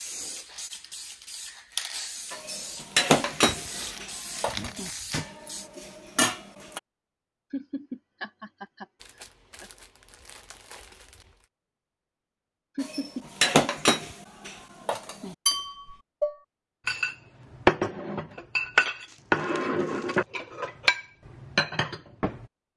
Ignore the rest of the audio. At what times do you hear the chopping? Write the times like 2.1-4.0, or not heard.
not heard.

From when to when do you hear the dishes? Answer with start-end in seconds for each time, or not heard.
2.3-6.8, 12.8-22.4.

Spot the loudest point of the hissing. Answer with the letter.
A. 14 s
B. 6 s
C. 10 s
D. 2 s
D.